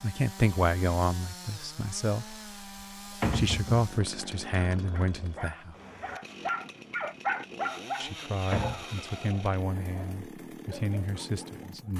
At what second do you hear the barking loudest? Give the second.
7 s.